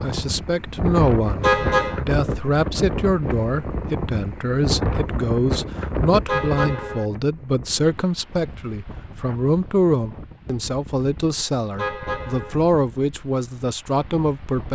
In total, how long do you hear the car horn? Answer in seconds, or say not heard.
2 s.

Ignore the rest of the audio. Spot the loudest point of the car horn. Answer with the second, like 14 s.
2 s.